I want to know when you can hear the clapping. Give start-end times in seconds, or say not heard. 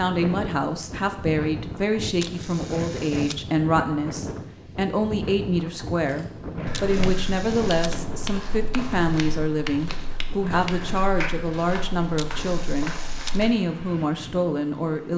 7.0-13.6.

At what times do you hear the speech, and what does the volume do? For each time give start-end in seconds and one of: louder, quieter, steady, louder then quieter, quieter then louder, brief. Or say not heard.
0.0-15.1 steady.